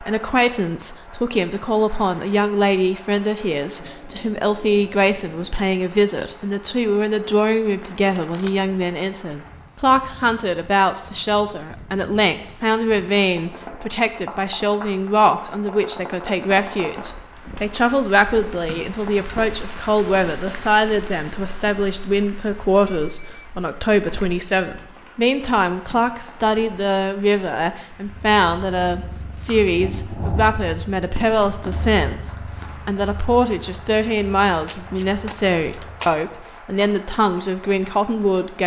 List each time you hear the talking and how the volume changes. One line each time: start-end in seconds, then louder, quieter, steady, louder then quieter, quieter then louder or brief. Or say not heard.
0.0-38.6 steady.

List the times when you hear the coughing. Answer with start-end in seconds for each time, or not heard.
not heard.